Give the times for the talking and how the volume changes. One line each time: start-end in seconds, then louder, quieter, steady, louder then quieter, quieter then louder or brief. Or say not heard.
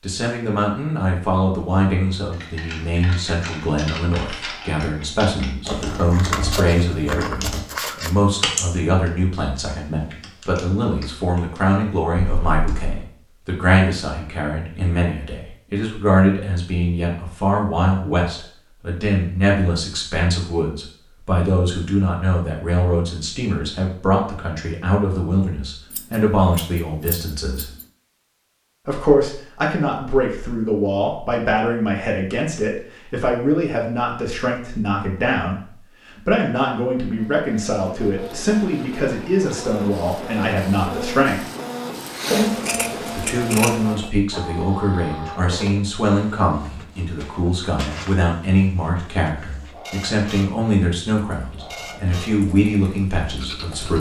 0.0-27.6 steady
28.9-41.4 steady
43.1-53.9 steady.